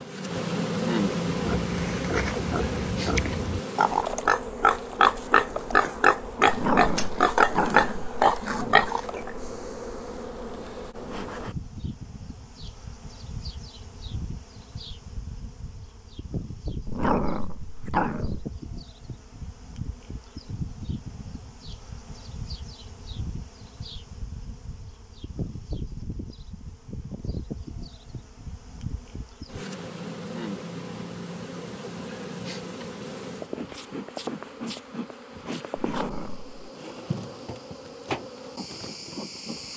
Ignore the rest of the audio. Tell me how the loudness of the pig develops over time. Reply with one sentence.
The volume of the pig goes up.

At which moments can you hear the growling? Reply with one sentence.
You can hear the growling from 6.5 to 8.9 s, from 16.9 to 18.4 s and from 35.8 to 36.5 s.